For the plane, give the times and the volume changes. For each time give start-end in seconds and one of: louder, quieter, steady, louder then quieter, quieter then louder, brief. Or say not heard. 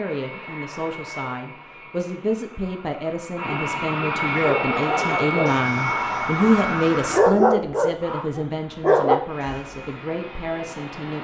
0.0-11.1 louder then quieter.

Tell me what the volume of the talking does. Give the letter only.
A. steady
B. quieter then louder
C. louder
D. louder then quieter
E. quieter
D.